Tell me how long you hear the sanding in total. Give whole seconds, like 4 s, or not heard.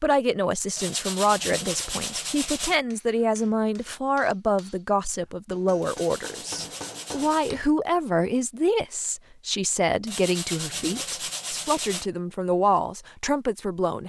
6 s.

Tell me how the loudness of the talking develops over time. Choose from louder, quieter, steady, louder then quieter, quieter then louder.
steady.